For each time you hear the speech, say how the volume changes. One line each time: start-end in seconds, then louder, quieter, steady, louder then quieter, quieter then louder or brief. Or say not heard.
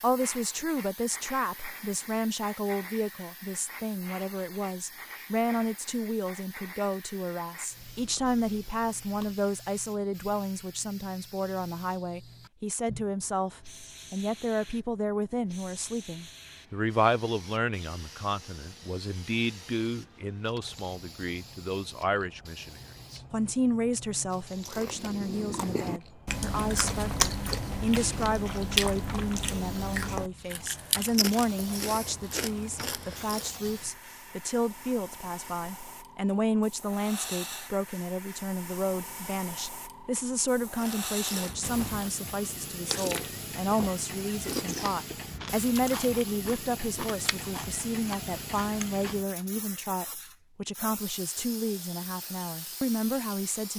0.0-53.7 steady.